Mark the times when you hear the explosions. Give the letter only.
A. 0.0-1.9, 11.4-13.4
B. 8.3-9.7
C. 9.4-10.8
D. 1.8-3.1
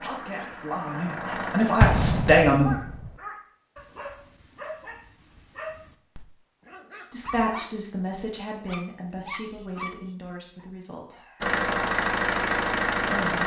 D.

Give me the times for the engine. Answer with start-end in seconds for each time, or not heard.
0.0-1.9, 11.4-13.4.